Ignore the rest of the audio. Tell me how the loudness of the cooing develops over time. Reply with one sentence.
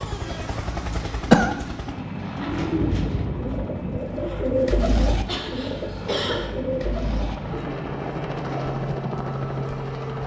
The volume of the cooing goes up, then down.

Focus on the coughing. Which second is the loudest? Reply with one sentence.
The loudest moment of the coughing is at 1 second.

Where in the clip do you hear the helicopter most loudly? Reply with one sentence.
The loudest moment of the helicopter is at 9 seconds.